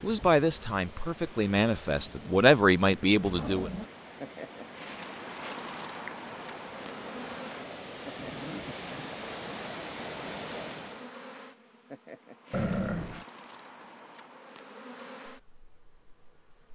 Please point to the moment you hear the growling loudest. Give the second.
13 s.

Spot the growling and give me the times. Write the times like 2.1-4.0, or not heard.
3.2-3.9, 8.2-9.2, 12.5-13.2.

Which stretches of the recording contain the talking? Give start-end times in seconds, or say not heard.
0.0-3.7.